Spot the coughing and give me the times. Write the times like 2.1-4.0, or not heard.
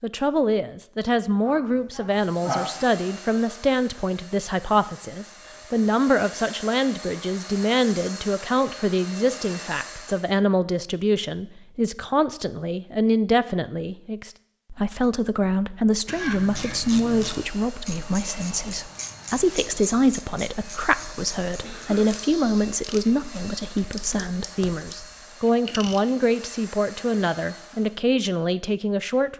1.4-2.6, 16.1-16.8, 21.6-22.1.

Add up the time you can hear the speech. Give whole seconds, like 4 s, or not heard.
29 s.